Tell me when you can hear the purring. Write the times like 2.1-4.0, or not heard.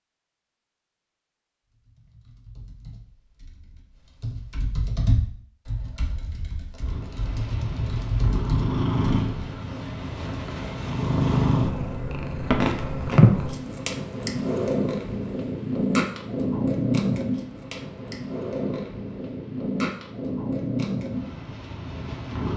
6.8-22.5.